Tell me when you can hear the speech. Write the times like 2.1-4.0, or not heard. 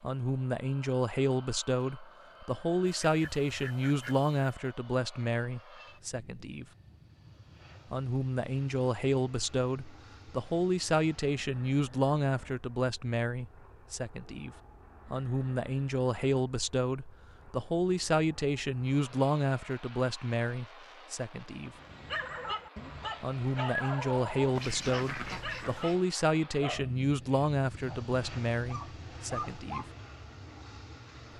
0.0-6.7, 7.9-21.7, 23.2-29.9.